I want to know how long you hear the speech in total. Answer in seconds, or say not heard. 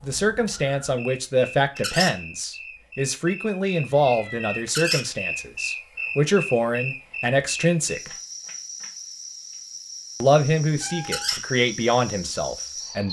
11 s.